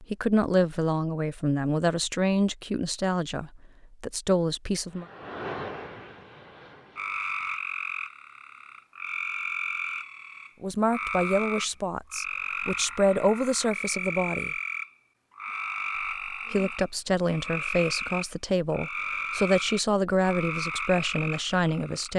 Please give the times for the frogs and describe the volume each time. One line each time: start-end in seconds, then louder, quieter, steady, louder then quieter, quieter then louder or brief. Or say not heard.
7.0-22.1 steady.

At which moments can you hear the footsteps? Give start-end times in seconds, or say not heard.
not heard.